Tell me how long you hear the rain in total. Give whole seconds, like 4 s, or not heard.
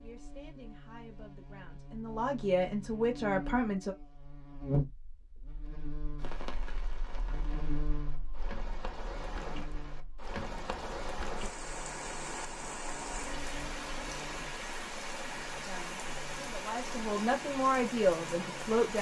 13 s.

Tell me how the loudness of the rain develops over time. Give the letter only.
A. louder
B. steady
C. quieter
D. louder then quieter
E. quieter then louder
A.